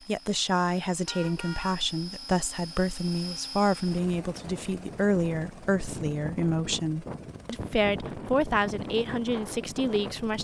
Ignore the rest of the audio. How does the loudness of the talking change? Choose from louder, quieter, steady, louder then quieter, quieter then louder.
steady.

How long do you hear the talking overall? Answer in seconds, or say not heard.
10 s.